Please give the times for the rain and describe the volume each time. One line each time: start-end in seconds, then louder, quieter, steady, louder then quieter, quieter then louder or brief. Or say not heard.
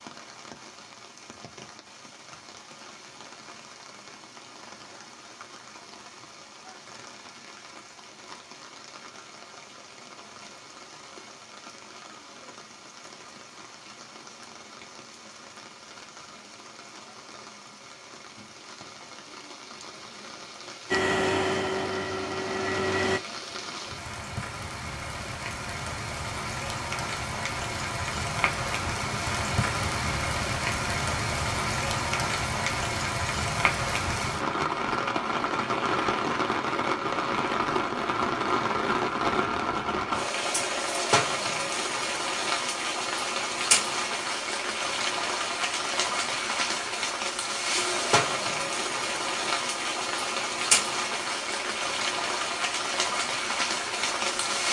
0.0-54.6 louder.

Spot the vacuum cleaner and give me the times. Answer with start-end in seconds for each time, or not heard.
20.9-23.2.